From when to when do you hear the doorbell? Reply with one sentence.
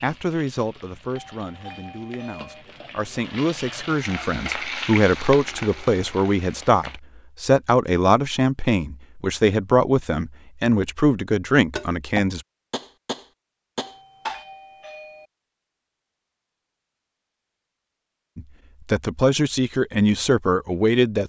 You can hear the doorbell from 1.1 to 2.6 s and from 13.8 to 15.3 s.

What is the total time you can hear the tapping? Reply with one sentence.
The tapping can be heard for 3 seconds in total.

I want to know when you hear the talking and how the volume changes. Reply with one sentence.
You can hear the talking from 0.0 to 12.4 s, getting louder; and briefly from 18.4 to 21.2 s.